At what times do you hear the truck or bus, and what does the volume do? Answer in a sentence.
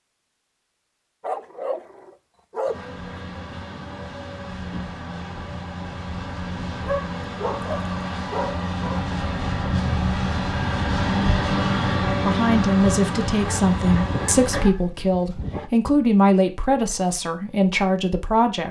You can hear the truck or bus from 2.6 to 14.7 s, getting louder.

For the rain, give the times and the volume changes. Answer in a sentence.
You can't hear the rain here.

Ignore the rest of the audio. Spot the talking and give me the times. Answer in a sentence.
The talking can be heard from 12.1 to 18.6 s.